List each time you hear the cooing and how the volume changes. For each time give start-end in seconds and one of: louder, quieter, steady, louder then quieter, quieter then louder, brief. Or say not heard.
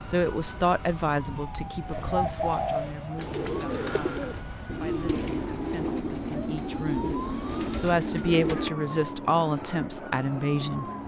1.9-8.7 steady.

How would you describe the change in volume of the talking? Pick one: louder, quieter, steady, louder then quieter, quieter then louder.
quieter then louder.